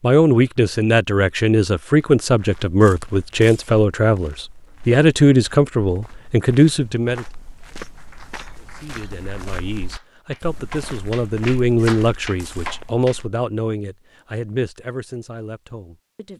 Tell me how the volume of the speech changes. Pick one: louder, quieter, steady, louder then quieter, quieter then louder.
quieter.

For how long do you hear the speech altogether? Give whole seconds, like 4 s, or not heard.
15 s.